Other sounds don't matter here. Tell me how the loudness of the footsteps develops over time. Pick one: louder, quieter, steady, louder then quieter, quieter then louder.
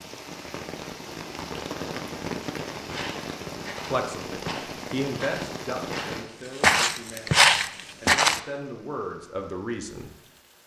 louder.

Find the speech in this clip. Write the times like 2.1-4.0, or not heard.
3.9-10.1.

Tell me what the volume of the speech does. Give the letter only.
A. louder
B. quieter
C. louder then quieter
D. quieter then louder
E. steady
D.